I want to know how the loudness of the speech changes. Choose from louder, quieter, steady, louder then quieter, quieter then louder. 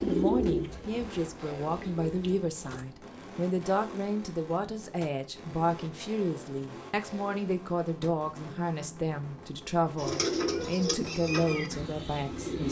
steady.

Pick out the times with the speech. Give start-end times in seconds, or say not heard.
0.0-12.6.